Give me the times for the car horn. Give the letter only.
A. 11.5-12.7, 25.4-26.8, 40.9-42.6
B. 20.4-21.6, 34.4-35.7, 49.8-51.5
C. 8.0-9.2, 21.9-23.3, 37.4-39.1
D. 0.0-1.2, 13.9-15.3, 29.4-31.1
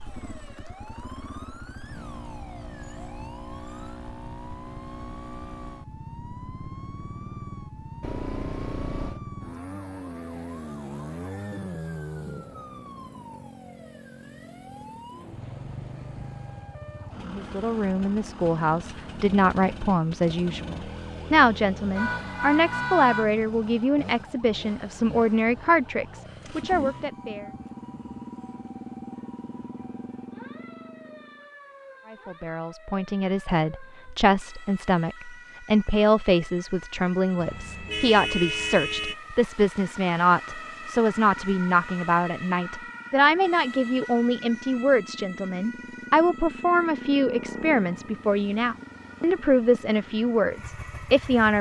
C.